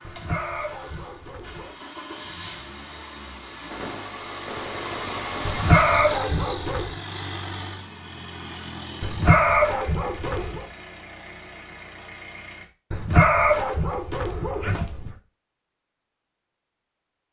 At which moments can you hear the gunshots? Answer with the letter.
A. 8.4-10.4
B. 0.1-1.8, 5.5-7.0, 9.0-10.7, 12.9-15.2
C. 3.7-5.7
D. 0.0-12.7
C.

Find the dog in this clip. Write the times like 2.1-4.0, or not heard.
0.1-1.8, 5.5-7.0, 9.0-10.7, 12.9-15.2.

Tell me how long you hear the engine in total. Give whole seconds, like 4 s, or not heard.
13 s.